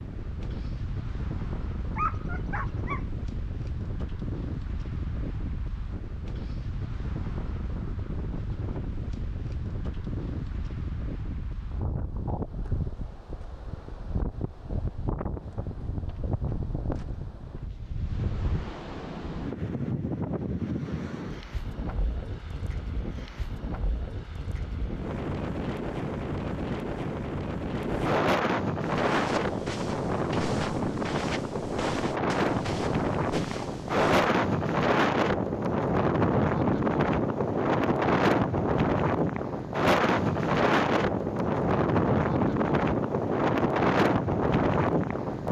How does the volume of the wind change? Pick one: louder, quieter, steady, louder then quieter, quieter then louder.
louder.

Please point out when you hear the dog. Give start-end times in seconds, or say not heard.
1.9-3.1.